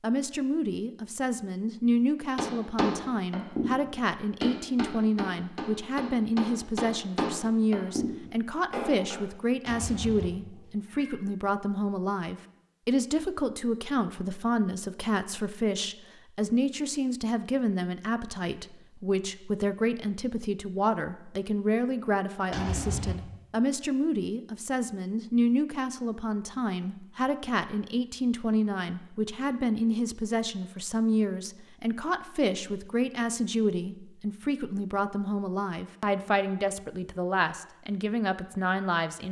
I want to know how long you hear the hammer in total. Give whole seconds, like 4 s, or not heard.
7 s.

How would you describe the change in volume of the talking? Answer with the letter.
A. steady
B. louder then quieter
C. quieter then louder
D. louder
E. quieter
A.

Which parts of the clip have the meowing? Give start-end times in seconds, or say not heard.
9.7-11.2, 22.5-23.1.